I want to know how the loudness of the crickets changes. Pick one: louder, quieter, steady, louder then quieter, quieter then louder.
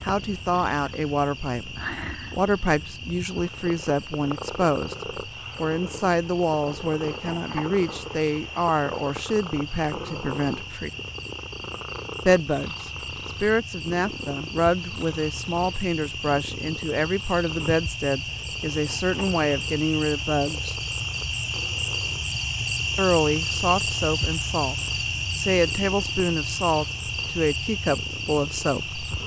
louder.